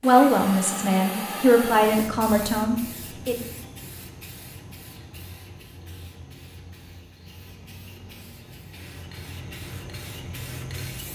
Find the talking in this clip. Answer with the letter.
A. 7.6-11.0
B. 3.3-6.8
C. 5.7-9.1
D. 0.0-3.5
D.